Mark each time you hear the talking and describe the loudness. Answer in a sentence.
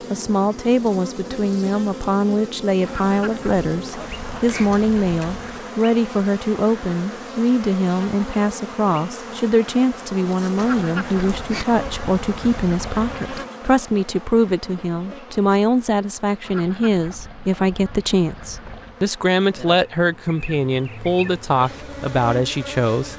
The talking can be heard from 0.1 to 23.1 s, at a steady volume.